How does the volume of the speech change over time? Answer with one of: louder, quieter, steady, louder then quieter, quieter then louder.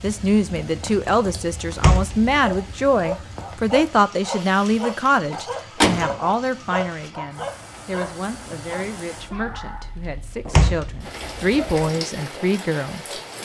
quieter then louder.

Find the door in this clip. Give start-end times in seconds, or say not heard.
1.8-2.4, 5.3-6.2, 10.5-11.9.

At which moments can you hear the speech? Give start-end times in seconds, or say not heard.
0.0-13.0.